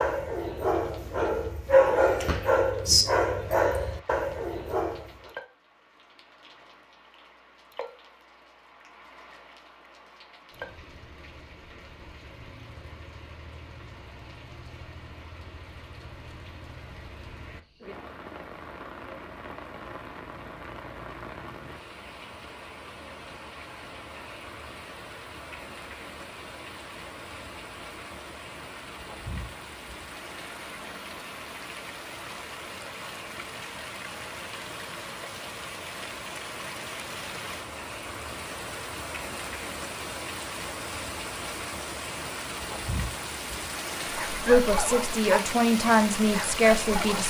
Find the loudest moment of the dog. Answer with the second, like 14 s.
2 s.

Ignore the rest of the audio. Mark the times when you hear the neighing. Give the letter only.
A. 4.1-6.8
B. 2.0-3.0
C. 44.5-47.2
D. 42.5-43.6
B.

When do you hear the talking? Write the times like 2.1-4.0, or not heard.
44.5-47.2.